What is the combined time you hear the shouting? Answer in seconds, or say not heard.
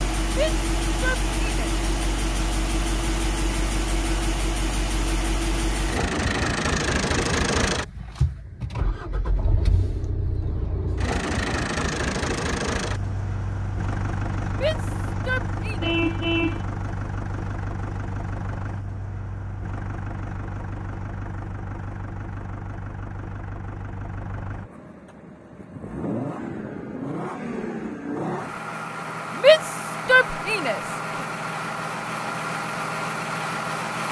4 s.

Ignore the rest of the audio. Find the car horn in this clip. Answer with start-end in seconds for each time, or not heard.
15.8-16.6.